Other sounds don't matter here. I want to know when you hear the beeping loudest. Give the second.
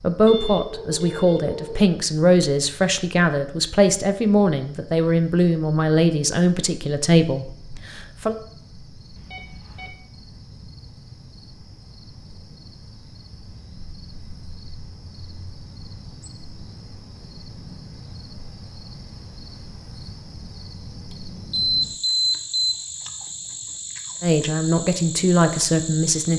22 s.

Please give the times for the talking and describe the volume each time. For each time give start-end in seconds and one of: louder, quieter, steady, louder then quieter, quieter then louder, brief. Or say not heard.
0.0-8.3 steady
24.2-26.3 brief.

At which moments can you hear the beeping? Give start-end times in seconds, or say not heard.
0.2-1.9, 9.2-9.9, 21.5-22.7.